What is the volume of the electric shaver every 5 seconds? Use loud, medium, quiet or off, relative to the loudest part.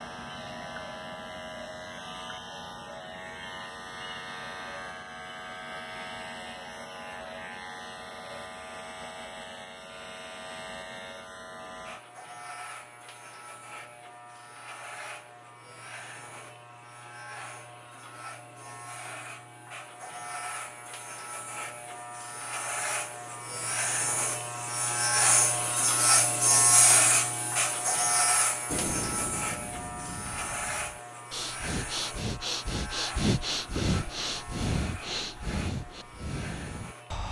quiet, quiet, quiet, quiet, medium, loud, quiet, quiet.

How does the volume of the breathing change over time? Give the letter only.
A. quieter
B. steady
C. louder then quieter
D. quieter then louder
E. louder
C.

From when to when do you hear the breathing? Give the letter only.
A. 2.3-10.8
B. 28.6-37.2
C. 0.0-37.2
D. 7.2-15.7
B.